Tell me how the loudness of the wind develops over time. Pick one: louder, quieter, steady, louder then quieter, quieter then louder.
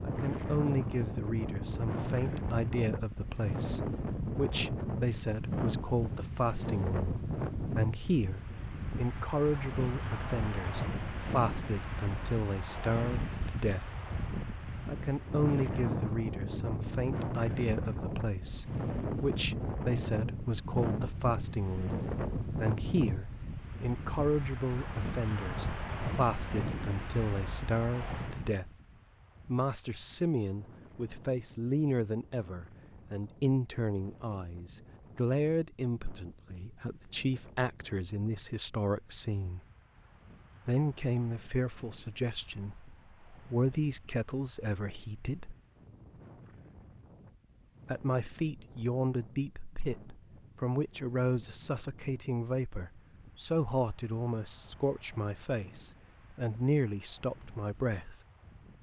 quieter.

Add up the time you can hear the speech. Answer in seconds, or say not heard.
53 s.